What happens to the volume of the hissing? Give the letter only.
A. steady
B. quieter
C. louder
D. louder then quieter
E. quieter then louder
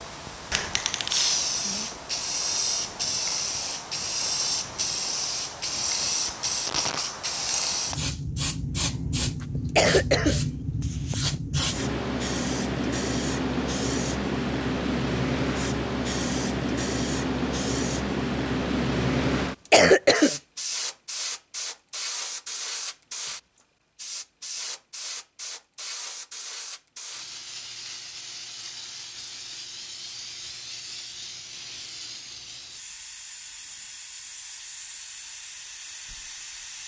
B.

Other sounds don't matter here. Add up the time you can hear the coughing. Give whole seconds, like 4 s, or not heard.
3 s.